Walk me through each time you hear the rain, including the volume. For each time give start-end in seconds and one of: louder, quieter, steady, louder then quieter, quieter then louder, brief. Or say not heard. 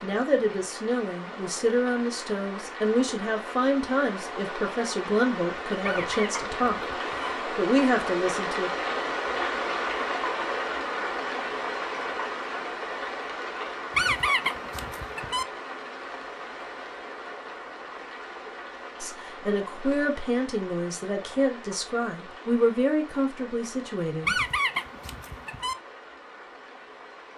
0.0-27.3 louder then quieter.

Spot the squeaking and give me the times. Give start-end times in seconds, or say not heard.
5.8-7.3, 13.9-15.4, 24.2-25.8.